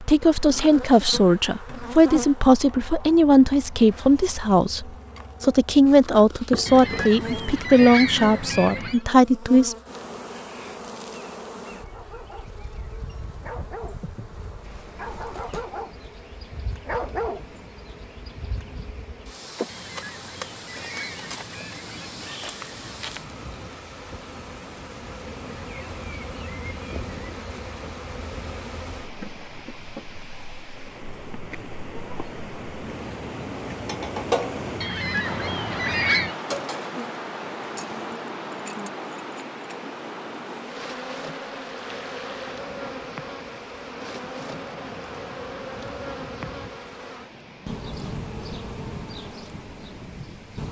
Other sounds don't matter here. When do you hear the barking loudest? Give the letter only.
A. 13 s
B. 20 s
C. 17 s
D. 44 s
C.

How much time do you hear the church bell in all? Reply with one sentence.
The church bell can't be heard in this clip.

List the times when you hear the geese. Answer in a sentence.
You can hear the geese from 6.7 to 9.0 s, from 19.6 to 22.6 s and from 34.8 to 36.4 s.